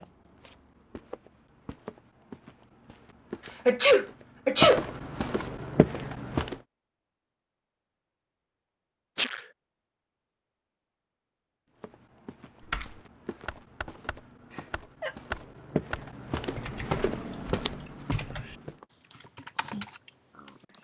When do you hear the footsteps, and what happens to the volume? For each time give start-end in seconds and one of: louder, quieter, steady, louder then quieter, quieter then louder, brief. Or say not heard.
0.0-6.6 louder
11.8-18.9 louder.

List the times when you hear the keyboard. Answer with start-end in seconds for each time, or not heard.
12.6-20.8.